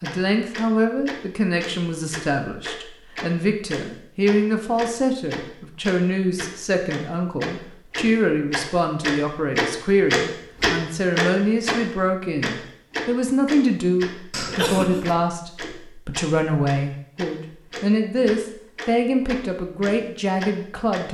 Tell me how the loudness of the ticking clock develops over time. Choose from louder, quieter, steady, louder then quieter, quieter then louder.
louder then quieter.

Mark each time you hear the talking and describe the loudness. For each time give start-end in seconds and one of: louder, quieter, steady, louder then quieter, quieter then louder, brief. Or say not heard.
0.0-21.0 steady.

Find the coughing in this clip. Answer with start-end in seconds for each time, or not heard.
14.3-15.1.